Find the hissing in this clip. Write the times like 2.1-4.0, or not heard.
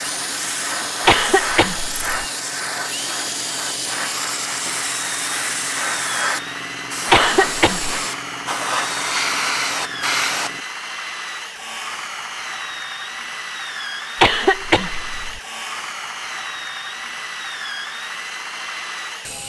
0.0-10.6.